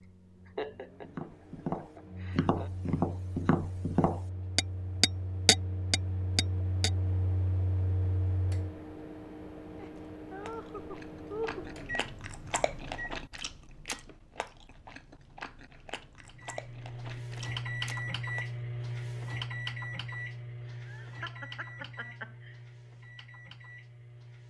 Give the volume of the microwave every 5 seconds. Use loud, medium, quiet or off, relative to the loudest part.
quiet, medium, medium, loud, medium.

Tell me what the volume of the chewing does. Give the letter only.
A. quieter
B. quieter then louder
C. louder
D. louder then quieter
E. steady
D.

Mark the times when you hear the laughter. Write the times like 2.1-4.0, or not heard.
0.0-2.7, 9.8-11.7, 20.6-22.6.